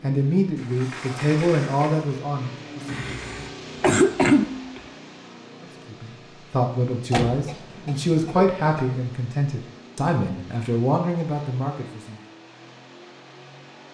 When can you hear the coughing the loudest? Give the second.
4 s.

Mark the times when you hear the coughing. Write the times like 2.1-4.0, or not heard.
2.9-4.8, 7.1-8.9.